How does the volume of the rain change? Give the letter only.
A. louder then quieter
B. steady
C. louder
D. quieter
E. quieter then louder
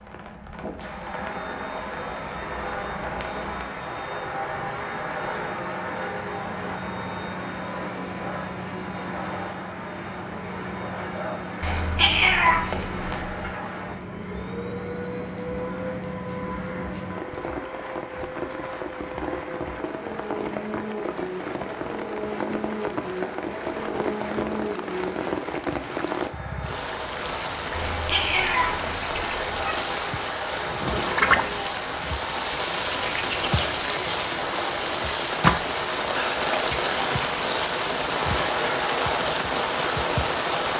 C.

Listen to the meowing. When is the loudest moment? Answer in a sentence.
The volume of the meowing peaks at 12 seconds.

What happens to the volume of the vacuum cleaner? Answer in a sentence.
The loudness of the vacuum cleaner stays about the same.